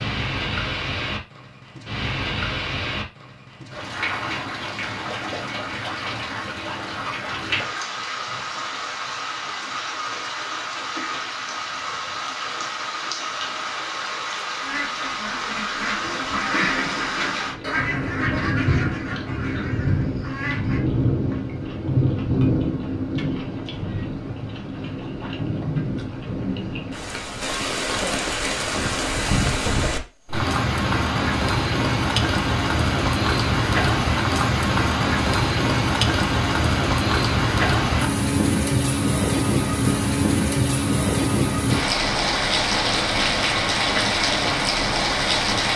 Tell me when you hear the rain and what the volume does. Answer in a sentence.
The rain can be heard from 0.0 to 45.7 s, getting louder.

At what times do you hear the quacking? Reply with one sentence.
You can hear the quacking from 14.6 to 20.9 s.